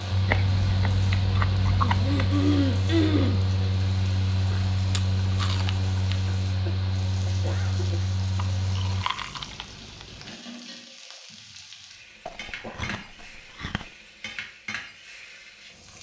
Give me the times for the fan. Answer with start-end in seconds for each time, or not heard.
0.0-9.1.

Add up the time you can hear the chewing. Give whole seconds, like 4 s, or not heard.
7 s.